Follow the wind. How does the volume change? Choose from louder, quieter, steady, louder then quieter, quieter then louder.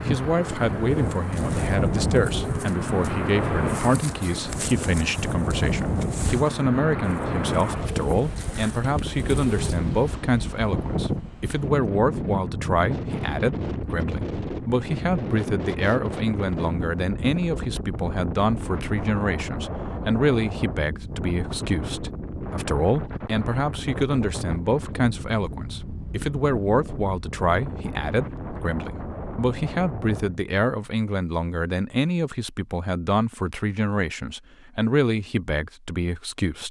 quieter.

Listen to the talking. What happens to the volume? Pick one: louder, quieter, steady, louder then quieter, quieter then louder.
steady.